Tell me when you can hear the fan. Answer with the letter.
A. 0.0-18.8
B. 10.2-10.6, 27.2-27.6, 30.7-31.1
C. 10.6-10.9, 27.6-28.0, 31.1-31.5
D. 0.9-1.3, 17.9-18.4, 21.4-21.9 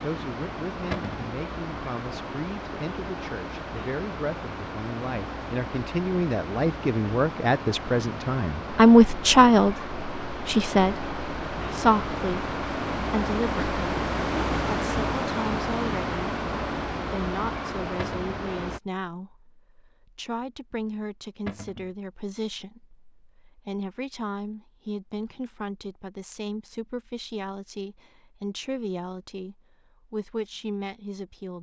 A.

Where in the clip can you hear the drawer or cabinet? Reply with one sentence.
You can hear the drawer or cabinet from 0.9 to 1.3 s, from 17.9 to 18.4 s and from 21.4 to 21.9 s.